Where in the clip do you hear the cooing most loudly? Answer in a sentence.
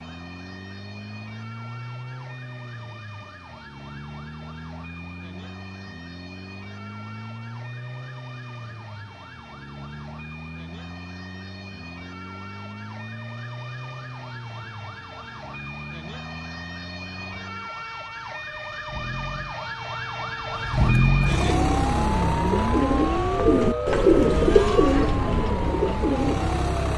The volume of the cooing peaks at 24 seconds.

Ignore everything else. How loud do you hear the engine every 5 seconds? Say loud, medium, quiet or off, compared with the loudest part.
quiet, quiet, quiet, quiet, loud, medium.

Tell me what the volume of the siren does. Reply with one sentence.
The loudness of the siren goes up.